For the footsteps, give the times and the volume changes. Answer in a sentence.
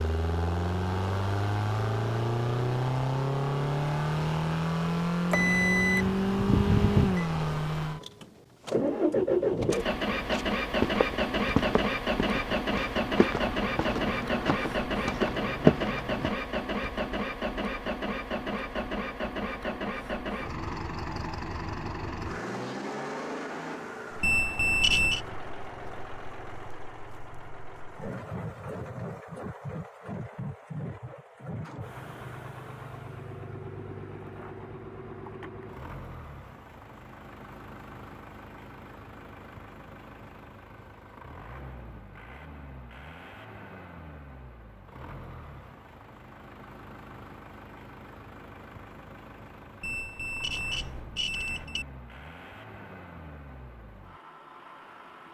The footsteps can be heard from 10.0 to 16.3 s, getting louder.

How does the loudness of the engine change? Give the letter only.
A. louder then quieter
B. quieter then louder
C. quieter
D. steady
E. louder
C.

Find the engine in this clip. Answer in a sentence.
The engine can be heard from 0.0 to 55.2 s.